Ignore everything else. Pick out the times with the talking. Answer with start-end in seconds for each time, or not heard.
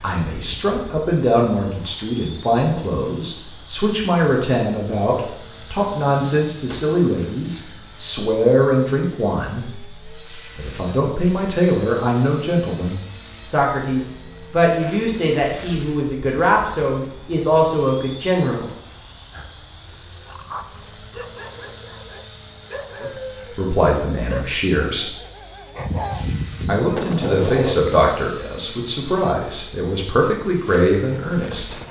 0.0-18.7, 23.0-25.1, 26.6-31.8.